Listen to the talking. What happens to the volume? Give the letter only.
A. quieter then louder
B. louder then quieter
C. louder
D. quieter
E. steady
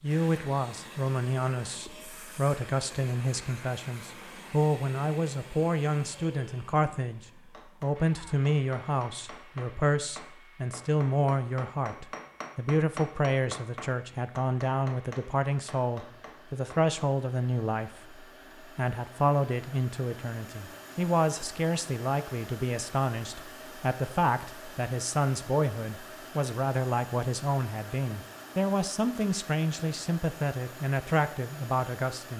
E.